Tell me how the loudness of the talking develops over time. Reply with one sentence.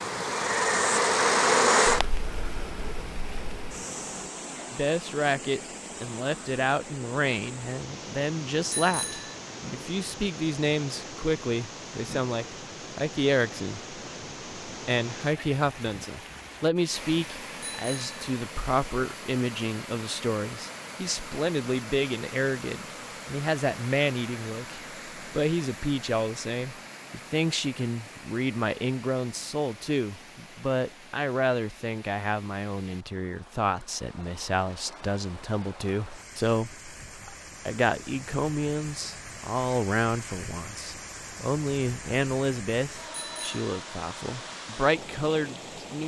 The volume of the talking stays about the same.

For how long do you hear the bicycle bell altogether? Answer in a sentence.
The bicycle bell can be heard for 2 seconds in total.